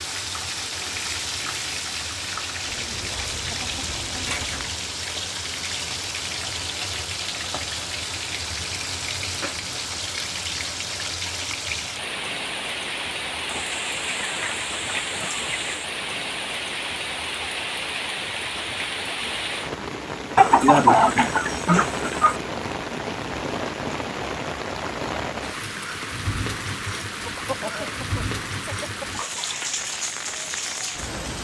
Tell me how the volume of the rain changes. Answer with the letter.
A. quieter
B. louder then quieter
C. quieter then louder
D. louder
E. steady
E.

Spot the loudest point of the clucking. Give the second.
21 s.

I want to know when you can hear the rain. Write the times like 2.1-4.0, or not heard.
0.0-31.3.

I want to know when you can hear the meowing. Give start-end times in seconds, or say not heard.
not heard.